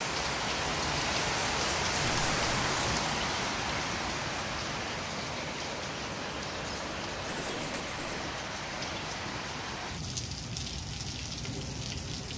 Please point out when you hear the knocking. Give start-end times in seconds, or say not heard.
not heard.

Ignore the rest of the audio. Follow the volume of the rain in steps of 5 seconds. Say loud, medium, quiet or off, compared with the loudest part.
loud, medium, medium.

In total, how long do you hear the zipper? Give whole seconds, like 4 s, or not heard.
2 s.